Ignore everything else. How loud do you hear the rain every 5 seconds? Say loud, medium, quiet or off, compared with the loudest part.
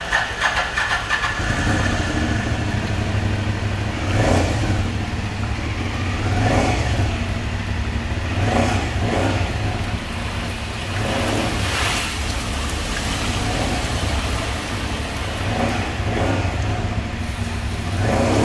medium, medium, loud, medium.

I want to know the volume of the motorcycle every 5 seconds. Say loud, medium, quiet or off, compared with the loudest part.
loud, loud, medium, loud.